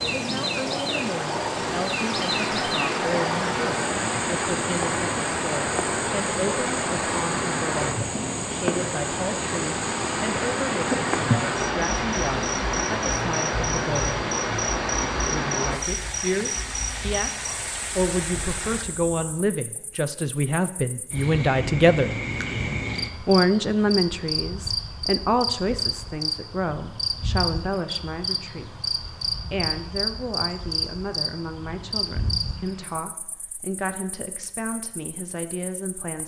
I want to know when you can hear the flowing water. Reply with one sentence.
You can hear the flowing water from 0.0 to 18.9 s.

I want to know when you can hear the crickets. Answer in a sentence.
You can hear the crickets from 0.0 to 36.2 s.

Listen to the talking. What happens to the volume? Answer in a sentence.
The volume of the talking goes up, then down.